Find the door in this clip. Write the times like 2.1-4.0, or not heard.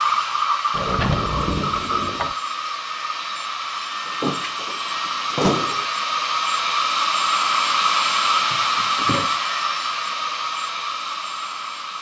0.7-2.4, 4.0-5.8, 8.5-9.3.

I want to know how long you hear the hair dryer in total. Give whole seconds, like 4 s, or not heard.
12 s.